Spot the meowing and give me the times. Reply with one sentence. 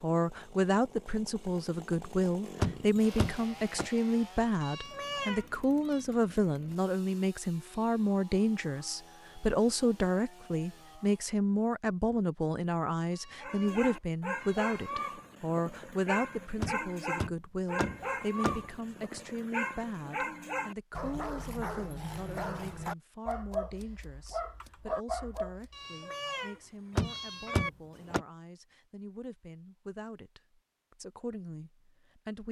The meowing can be heard from 4.6 to 6.0 s, from 13.1 to 15.1 s and from 25.7 to 27.7 s.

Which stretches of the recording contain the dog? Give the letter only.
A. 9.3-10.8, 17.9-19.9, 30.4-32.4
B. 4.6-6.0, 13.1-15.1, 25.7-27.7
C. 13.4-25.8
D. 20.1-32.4
C.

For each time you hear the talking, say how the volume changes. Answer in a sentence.
You can hear the talking from 0.0 to 32.4 s, getting quieter.